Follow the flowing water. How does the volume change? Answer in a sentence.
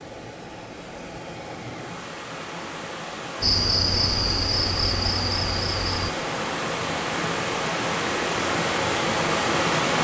The loudness of the flowing water goes up.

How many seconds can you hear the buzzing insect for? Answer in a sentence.
The buzzing insect can be heard for 3 seconds in total.